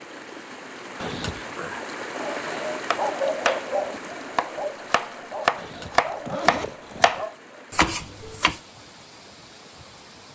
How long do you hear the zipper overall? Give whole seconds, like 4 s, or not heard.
2 s.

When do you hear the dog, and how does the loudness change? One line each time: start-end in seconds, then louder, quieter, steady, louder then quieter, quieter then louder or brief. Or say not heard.
2.2-7.6 quieter.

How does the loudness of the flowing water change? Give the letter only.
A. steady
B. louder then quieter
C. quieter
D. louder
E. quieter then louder
C.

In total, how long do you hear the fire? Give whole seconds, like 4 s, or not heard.
not heard.